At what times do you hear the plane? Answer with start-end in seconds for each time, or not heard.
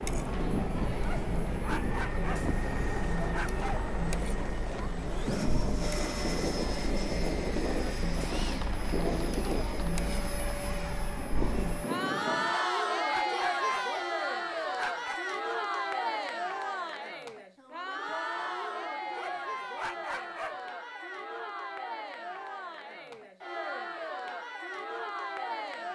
0.0-12.6.